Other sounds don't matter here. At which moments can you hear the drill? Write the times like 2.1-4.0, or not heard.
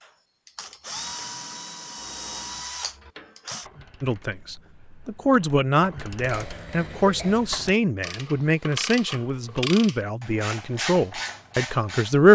0.0-3.7.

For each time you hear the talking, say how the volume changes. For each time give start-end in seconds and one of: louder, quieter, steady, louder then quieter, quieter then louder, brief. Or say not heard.
4.0-12.2 steady.